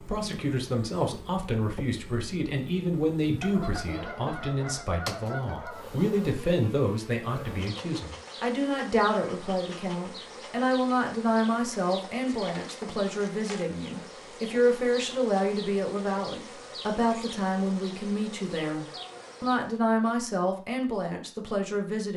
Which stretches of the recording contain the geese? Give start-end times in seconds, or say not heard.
3.4-5.8.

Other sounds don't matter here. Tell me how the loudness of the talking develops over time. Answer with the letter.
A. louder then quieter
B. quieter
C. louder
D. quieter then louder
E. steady
E.